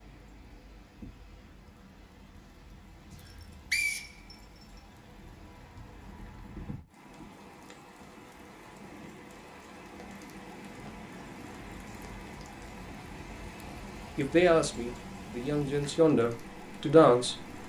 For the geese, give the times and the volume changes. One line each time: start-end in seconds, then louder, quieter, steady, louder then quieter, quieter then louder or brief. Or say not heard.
not heard.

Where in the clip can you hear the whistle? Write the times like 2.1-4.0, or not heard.
3.1-4.7.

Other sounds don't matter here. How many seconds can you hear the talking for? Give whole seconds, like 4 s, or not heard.
3 s.